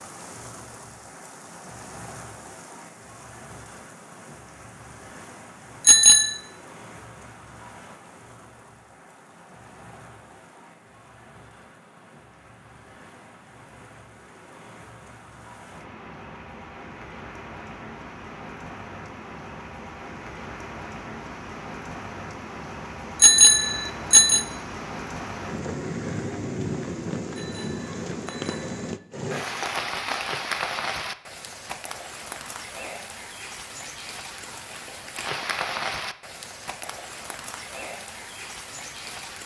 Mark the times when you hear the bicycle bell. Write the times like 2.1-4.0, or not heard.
5.8-6.3, 23.2-24.4, 27.3-28.9.